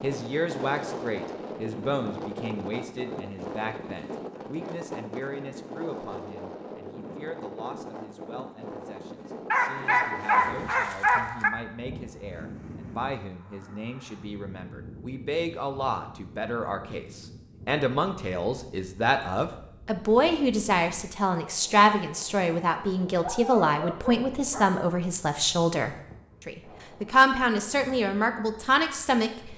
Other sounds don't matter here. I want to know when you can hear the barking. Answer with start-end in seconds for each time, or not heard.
9.5-11.5, 23.2-24.7.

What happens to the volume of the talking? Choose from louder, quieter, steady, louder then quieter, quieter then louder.
quieter then louder.